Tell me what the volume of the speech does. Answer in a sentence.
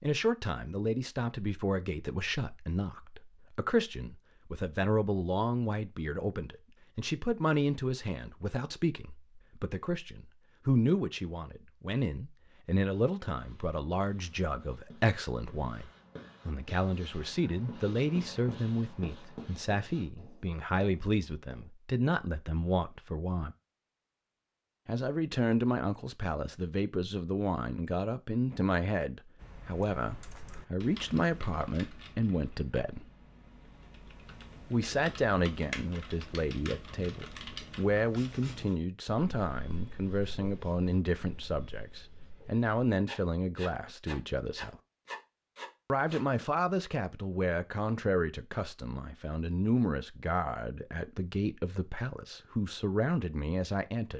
The volume of the speech stays about the same.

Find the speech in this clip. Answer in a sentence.
The speech can be heard from 0.0 to 23.6 s, from 24.9 to 33.1 s, from 34.7 to 44.8 s and from 45.9 to 54.1 s.